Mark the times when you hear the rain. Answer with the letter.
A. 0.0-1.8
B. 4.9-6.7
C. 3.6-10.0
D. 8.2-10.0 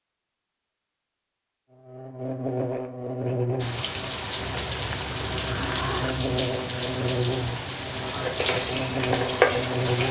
C.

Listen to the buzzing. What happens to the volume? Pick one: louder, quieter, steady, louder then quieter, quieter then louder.
quieter then louder.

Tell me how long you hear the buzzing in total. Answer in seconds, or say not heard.
8 s.